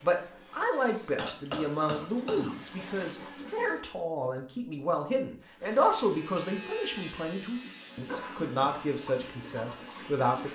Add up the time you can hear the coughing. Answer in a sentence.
You can hear the coughing for 2 seconds altogether.